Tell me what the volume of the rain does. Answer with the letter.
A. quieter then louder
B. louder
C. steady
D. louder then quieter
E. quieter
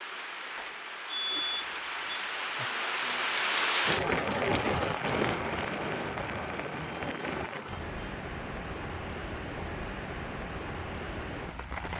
D.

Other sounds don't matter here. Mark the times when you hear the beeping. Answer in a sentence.
The beeping can be heard from 1.1 to 2.7 s and from 6.8 to 8.2 s.